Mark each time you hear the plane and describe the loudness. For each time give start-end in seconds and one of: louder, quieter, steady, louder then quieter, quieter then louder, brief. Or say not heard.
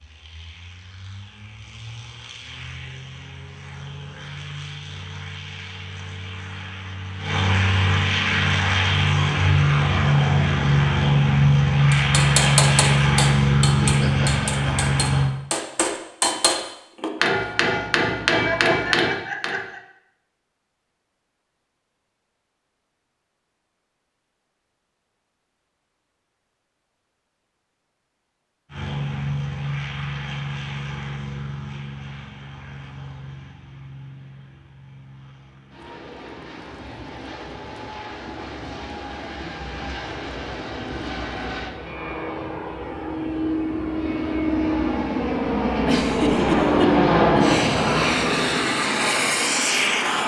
0.0-15.3 louder
28.7-50.2 quieter then louder.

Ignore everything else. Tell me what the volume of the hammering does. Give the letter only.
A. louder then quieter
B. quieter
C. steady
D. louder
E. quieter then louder
E.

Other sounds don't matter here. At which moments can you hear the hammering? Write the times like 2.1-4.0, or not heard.
11.9-19.6.